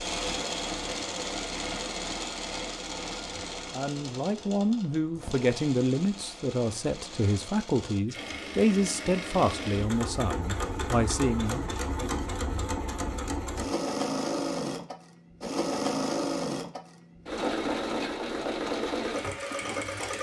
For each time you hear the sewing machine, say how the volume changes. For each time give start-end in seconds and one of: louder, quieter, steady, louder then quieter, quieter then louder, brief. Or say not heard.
0.0-20.1 quieter then louder.